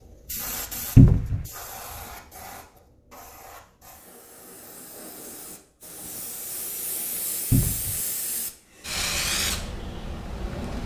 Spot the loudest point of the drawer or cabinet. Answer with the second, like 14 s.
1 s.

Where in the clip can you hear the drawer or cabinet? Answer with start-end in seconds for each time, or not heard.
0.9-1.4, 7.5-8.0.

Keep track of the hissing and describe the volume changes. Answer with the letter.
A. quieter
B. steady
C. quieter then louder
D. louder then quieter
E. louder
C.